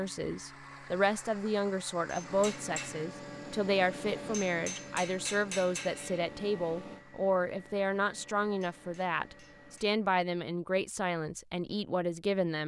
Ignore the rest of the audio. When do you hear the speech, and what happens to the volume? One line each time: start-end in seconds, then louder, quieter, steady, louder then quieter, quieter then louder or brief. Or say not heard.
0.0-12.6 steady.